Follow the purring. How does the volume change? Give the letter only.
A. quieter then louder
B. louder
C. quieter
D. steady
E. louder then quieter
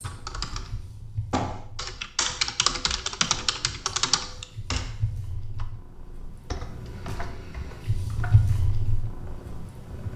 A.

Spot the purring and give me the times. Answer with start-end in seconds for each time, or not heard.
0.0-10.1.